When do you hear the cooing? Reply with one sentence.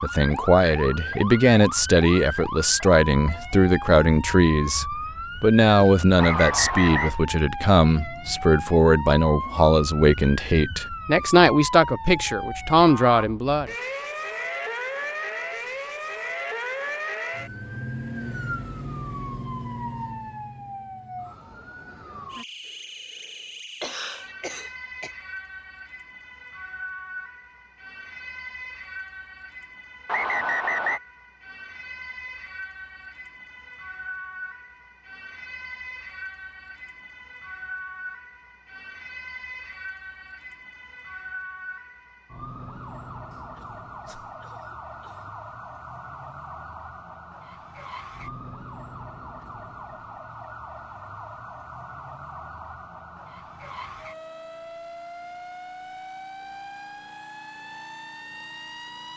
The cooing can't be heard in this clip.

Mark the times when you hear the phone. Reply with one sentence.
The phone can't be heard in this clip.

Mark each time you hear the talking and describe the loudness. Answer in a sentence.
The talking can be heard from 0.0 to 13.7 s, at a steady volume.